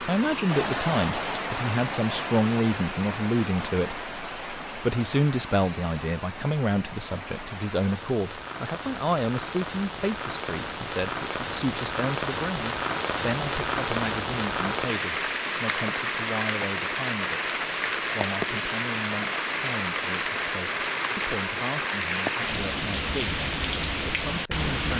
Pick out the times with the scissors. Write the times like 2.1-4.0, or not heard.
not heard.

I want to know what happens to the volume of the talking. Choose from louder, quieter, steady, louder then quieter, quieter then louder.
quieter.